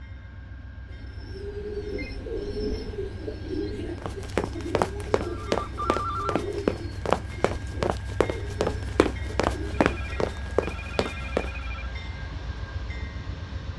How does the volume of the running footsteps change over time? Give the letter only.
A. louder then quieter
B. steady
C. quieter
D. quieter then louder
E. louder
B.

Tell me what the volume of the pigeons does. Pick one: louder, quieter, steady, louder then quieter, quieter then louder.
quieter.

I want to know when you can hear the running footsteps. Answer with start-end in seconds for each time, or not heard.
4.0-11.6.